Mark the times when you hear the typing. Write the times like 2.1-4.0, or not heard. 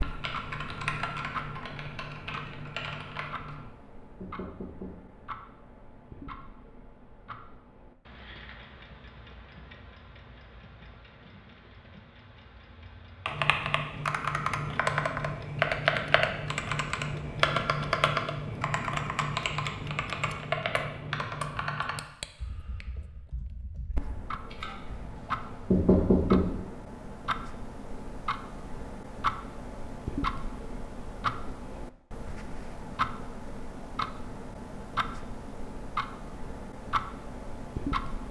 0.0-3.6, 13.2-24.8.